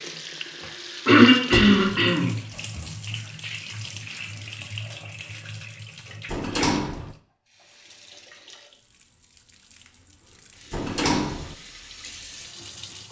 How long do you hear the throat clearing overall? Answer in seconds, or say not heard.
2 s.